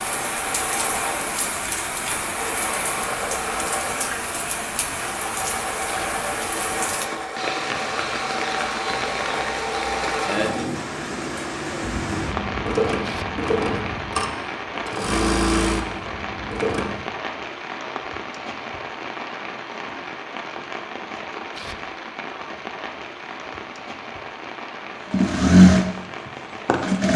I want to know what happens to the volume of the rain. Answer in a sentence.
The volume of the rain goes down.